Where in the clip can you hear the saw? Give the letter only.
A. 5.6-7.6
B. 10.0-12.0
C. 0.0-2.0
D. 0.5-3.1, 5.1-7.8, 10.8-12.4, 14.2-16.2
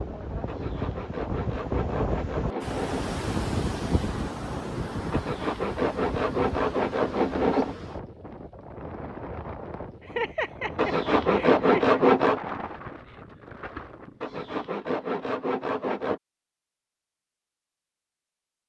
D.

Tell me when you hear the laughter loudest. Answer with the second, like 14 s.
10 s.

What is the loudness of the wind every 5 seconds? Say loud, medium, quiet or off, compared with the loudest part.
loud, medium, medium, off.